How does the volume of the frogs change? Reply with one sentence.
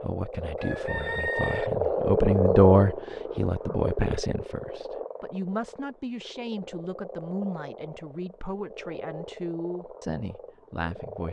The loudness of the frogs goes down.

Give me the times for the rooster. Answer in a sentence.
You can hear the rooster from 0.6 to 1.7 s.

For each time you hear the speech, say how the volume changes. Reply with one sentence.
The speech can be heard from 0.0 to 11.2 s, getting louder then quieter.